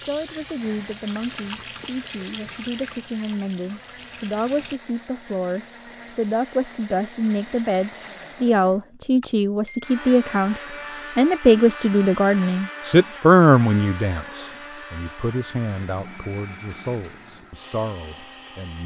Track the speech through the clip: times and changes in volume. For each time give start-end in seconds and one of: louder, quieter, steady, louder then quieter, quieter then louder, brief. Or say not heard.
0.0-18.8 louder then quieter.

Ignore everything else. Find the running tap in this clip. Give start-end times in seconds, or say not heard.
0.0-4.8.